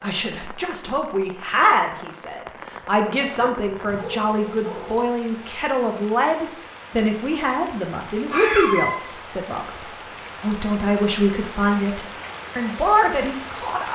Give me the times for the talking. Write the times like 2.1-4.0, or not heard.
0.0-13.9.